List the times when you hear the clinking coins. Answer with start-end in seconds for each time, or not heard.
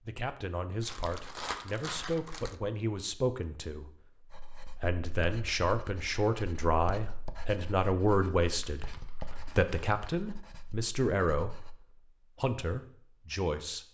not heard.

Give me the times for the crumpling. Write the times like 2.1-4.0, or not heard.
0.8-2.6, 8.6-10.2.